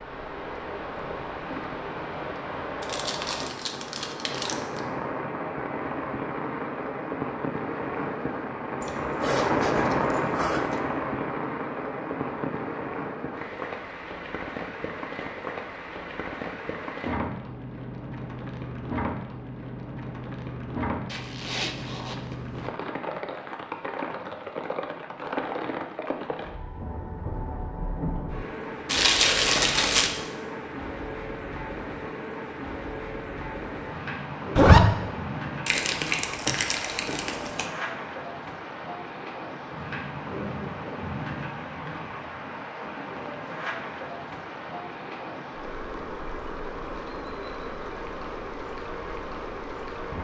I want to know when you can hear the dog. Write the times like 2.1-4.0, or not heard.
not heard.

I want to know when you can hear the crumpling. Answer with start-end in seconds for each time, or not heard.
2.8-4.8, 28.9-30.1, 35.6-37.6.